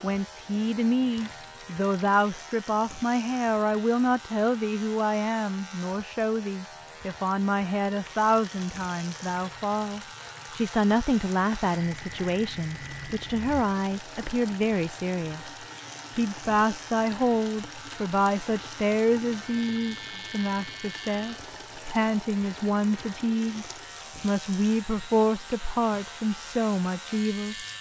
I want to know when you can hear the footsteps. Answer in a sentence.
You can't hear the footsteps here.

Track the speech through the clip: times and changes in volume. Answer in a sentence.
You can hear the speech from 0.0 to 27.6 s, at a steady volume.